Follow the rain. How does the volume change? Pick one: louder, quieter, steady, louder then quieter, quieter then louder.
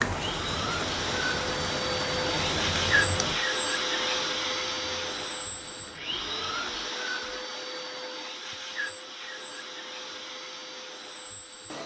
quieter.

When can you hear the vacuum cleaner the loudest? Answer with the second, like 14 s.
3 s.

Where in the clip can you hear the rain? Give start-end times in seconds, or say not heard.
0.0-6.7.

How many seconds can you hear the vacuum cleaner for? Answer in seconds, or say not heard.
12 s.